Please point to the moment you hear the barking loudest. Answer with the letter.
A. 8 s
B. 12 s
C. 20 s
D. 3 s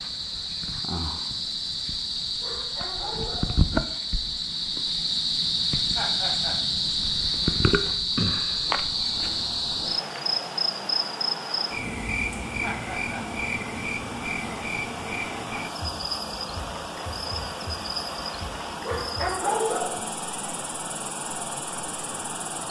C.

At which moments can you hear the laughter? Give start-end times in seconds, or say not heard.
6.0-6.5, 12.6-13.2.